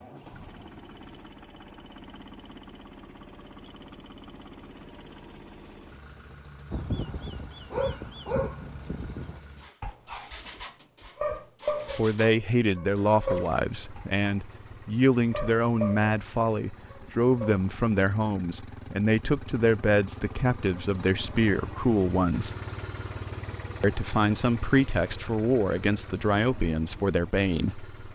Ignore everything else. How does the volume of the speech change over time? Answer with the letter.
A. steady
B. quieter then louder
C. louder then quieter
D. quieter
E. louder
A.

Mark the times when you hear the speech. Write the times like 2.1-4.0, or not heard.
11.9-22.5, 23.8-27.9.